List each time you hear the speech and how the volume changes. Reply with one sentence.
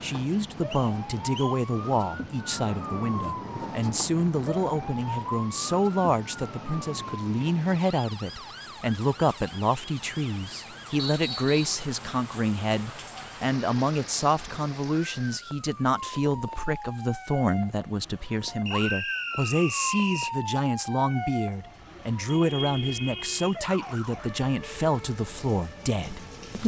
The speech can be heard from 0.0 to 26.6 s, at a steady volume.